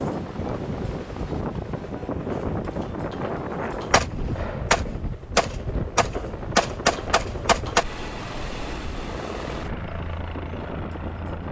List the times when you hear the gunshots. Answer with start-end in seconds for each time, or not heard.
3.9-7.8.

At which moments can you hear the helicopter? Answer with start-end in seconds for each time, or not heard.
0.0-11.4.